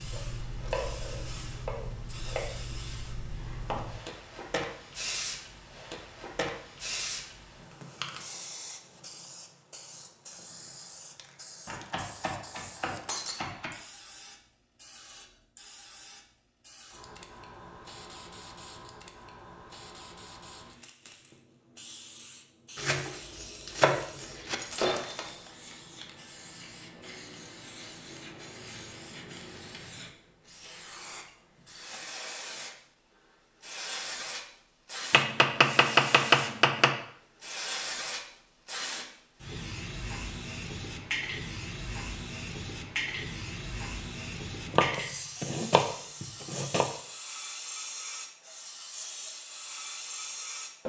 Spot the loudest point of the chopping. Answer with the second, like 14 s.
36 s.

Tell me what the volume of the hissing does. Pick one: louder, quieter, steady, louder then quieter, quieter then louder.
quieter then louder.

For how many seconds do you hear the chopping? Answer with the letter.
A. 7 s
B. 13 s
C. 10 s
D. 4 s
C.